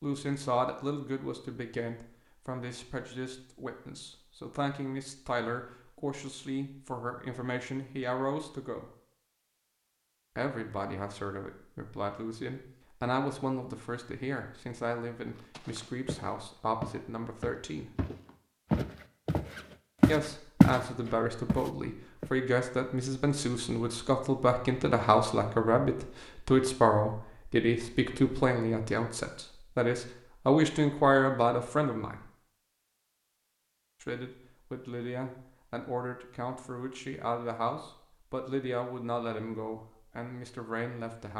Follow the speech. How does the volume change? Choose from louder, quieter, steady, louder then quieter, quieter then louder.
louder then quieter.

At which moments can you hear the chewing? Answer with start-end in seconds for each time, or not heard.
not heard.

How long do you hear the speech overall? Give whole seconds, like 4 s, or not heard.
36 s.